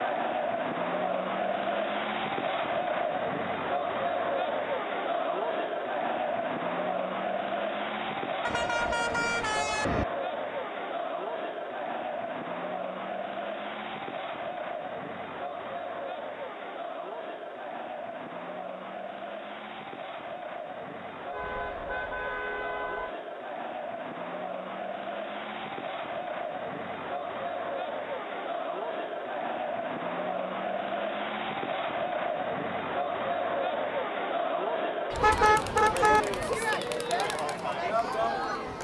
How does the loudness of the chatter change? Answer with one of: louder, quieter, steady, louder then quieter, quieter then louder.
quieter then louder.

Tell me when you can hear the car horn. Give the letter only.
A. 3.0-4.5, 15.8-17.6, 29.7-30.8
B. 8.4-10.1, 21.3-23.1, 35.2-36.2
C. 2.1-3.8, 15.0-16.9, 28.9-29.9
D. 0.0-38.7
B.